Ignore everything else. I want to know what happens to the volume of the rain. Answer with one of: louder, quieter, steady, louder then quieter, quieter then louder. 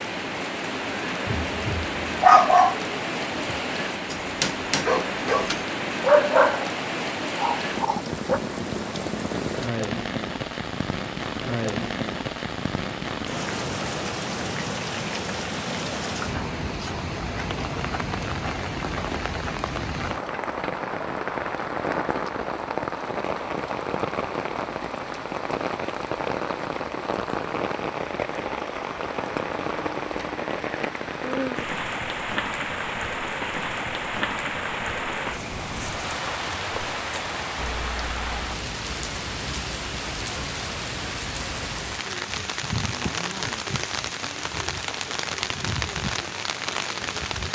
steady.